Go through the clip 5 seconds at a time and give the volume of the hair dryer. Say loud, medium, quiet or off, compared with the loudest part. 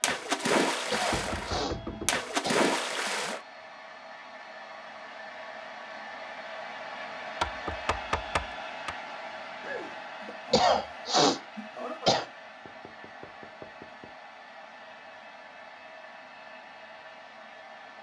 medium, loud, medium, medium.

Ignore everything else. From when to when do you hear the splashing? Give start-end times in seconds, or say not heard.
0.0-3.4.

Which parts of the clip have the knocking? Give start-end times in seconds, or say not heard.
1.1-2.2, 7.4-8.9, 12.6-14.2.